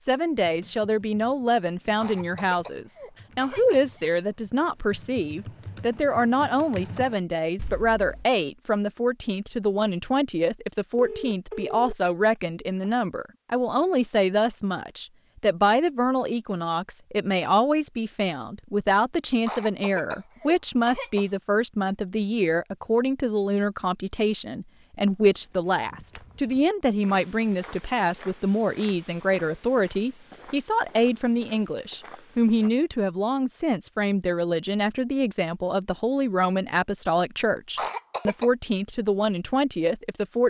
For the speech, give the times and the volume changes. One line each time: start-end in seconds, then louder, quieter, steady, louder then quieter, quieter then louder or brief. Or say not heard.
0.1-40.4 steady.